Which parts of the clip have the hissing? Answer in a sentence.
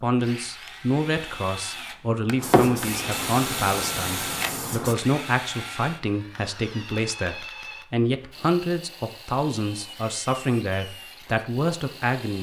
The hissing can be heard from 2.4 to 5.0 s.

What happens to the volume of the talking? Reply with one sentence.
The loudness of the talking stays about the same.